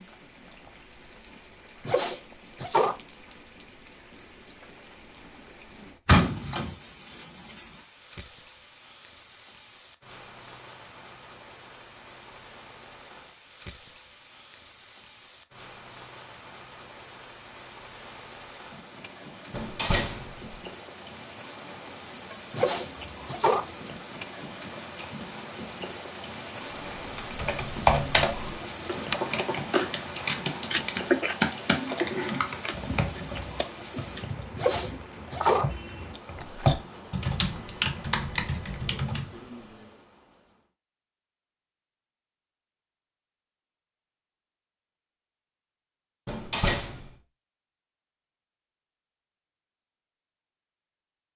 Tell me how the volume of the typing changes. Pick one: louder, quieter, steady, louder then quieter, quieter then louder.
quieter then louder.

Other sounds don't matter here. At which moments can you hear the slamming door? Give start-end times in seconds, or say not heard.
6.0-6.8, 19.5-20.6, 46.2-47.0.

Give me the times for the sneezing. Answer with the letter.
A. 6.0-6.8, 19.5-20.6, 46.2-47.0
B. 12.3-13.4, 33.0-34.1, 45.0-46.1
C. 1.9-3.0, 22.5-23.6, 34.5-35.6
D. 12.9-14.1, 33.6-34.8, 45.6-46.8
C.